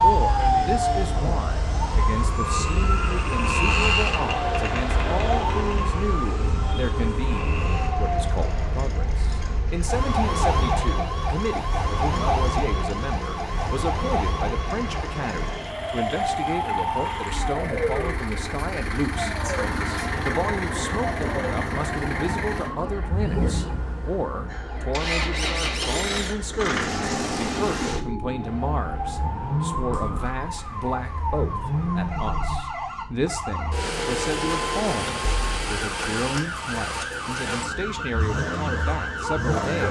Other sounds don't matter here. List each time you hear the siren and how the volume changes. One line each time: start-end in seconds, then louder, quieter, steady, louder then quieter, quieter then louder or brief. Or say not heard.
0.0-39.8 quieter.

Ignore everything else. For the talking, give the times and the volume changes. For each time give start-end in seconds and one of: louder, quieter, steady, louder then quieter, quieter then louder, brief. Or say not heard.
0.0-39.8 steady.